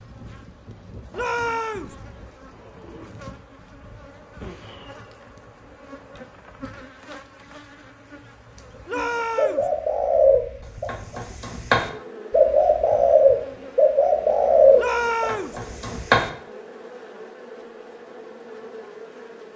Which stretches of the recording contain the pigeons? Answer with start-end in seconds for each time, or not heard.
9.3-16.3.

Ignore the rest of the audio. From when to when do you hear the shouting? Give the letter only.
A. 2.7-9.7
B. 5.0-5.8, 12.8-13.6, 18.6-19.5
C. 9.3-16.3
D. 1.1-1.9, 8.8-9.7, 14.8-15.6
D.